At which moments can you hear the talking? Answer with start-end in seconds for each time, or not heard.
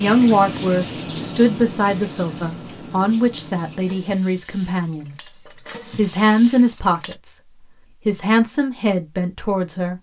0.0-5.2, 6.0-7.3, 8.1-9.9.